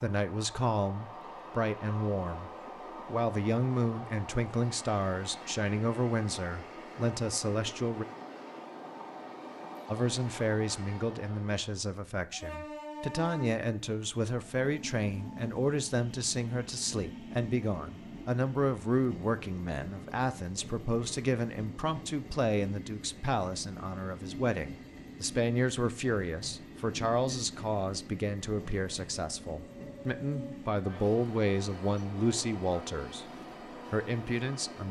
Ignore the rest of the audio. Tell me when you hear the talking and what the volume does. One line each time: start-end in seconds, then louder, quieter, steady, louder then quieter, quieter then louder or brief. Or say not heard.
0.0-8.1 steady
9.8-33.3 steady
33.9-34.8 brief.